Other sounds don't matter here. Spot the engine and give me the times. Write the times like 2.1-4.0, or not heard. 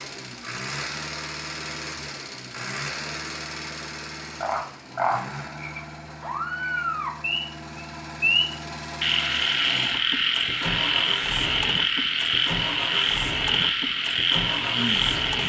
0.0-15.4.